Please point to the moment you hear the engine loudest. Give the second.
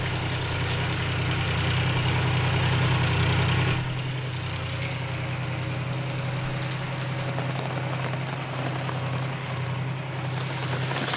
3 s.